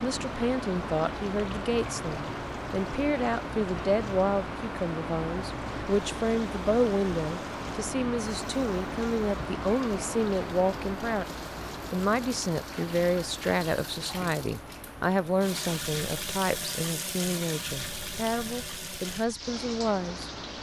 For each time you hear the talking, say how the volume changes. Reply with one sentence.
The talking can be heard from 0.0 to 20.3 s, at a steady volume.